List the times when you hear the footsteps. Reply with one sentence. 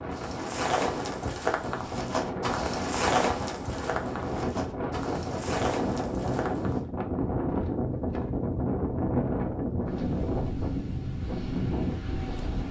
You can hear the footsteps from 0.1 to 6.8 s.